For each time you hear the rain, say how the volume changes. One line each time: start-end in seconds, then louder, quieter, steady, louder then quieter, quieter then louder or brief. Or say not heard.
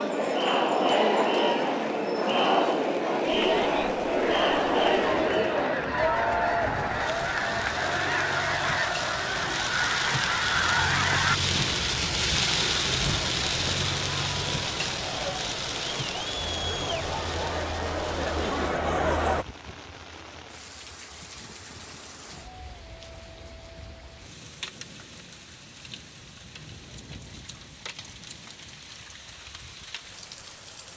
0.0-30.9 louder then quieter.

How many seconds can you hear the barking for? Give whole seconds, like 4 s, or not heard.
not heard.